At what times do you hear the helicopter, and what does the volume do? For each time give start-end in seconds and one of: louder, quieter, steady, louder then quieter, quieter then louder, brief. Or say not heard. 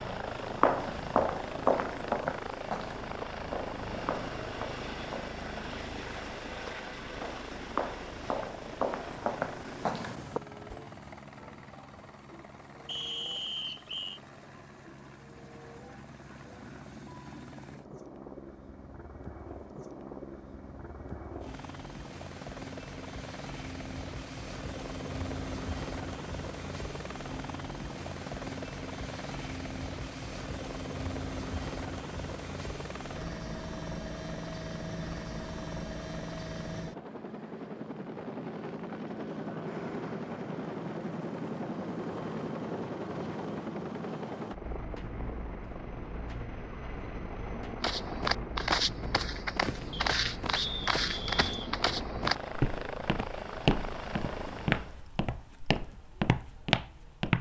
0.0-55.0 quieter then louder.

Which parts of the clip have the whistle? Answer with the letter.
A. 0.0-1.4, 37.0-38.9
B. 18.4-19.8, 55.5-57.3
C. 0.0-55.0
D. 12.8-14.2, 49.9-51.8
D.